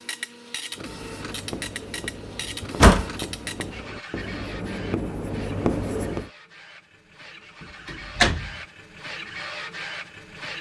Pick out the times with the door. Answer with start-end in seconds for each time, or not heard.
2.6-3.1, 7.8-8.5.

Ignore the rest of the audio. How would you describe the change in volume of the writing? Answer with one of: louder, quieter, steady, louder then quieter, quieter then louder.
louder.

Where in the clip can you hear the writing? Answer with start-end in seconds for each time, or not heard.
0.7-6.3.